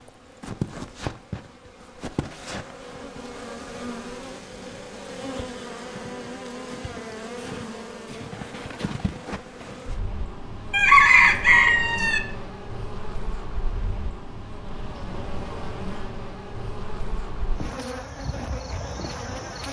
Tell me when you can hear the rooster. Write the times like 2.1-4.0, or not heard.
10.7-12.2.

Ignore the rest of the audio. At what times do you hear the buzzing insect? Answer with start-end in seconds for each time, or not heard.
0.0-19.6.